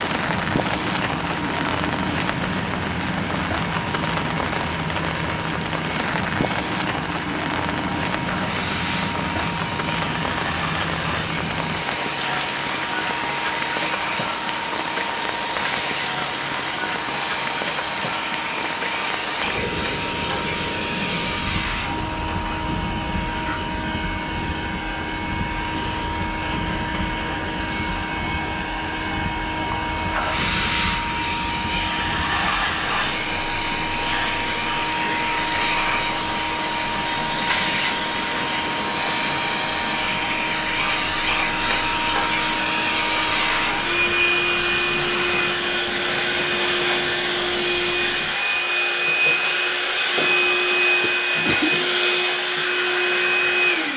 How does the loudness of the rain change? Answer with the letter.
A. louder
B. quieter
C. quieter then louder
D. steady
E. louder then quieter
B.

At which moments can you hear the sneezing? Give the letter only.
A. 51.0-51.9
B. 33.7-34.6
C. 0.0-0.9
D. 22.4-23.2
A.